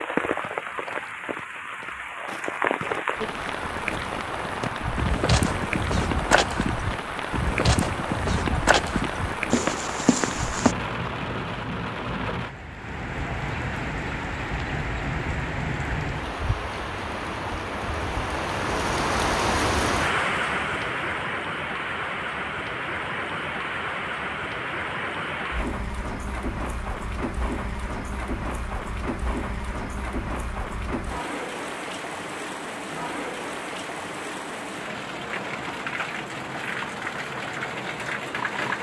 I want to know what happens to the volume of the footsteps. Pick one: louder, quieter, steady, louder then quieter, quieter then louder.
louder.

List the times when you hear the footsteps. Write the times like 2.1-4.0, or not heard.
0.3-10.8.